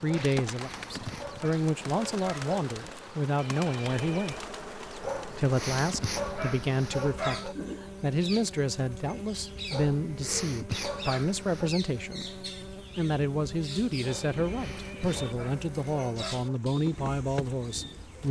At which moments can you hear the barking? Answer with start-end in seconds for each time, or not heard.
0.1-2.5, 5.0-7.5, 9.7-11.7, 14.0-16.6.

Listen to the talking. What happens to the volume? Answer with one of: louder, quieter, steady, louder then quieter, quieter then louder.
steady.